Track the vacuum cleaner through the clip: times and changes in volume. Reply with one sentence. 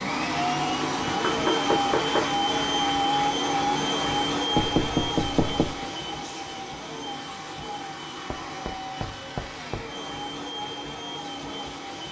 The vacuum cleaner can be heard from 0.0 to 12.0 s, getting quieter.